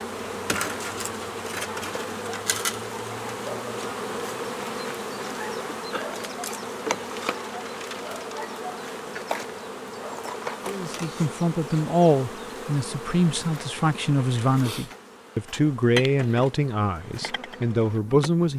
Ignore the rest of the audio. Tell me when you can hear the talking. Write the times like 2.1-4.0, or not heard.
10.7-18.5.